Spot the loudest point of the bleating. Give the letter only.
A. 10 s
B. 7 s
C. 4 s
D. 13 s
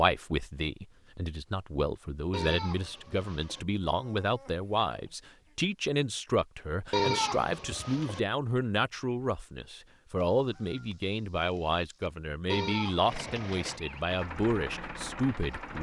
B.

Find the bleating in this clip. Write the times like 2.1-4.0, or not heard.
2.3-3.6, 6.9-8.2, 12.5-13.8.